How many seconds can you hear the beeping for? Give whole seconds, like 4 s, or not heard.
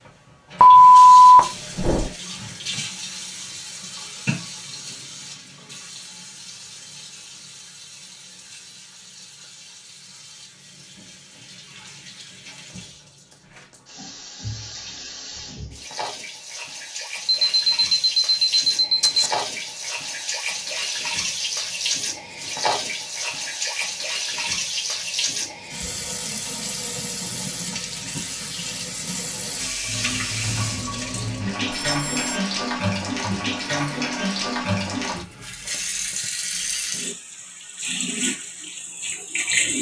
4 s.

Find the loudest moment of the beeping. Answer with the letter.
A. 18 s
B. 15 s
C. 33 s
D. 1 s
D.